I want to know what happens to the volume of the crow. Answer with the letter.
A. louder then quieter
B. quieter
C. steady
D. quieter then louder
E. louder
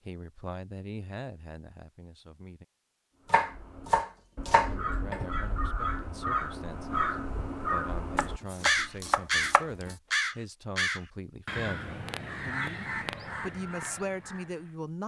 A.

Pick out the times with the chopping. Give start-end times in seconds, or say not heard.
3.3-5.3, 8.2-9.7.